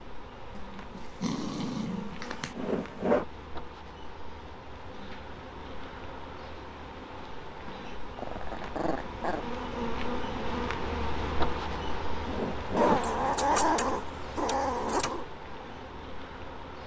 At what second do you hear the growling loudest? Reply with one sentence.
The loudest moment of the growling is at 14 seconds.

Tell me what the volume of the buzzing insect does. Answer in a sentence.
The loudness of the buzzing insect goes up, then down.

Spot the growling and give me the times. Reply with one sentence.
The growling can be heard from 0.6 to 2.5 s, from 7.7 to 9.4 s and from 12.8 to 15.2 s.